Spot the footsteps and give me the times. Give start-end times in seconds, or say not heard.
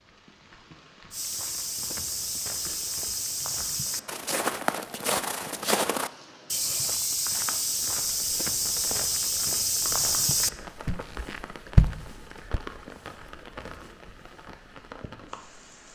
1.1-12.6.